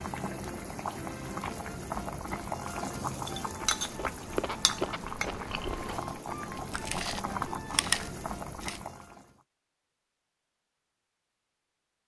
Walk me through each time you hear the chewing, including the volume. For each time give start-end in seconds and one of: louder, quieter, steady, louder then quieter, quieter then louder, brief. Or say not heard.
3.5-8.8 quieter then louder.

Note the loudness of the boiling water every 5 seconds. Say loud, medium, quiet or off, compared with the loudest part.
loud, loud, off.